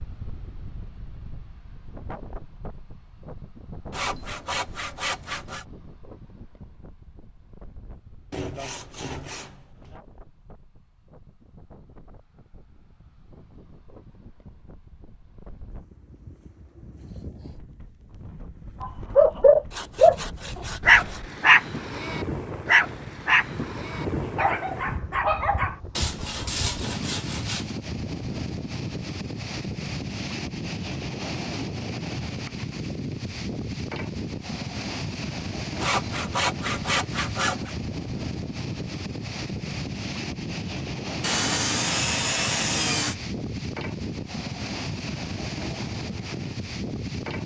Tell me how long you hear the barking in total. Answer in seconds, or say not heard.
6 s.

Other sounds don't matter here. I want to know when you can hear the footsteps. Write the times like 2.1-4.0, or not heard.
not heard.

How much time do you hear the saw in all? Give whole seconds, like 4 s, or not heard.
11 s.